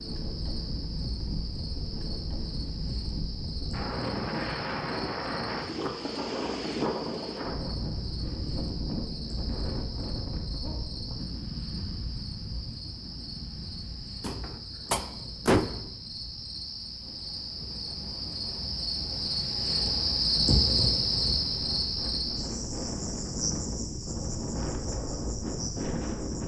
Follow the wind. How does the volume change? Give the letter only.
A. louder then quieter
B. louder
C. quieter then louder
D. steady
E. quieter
C.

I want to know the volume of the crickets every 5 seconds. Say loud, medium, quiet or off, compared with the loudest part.
quiet, quiet, quiet, medium, loud, quiet.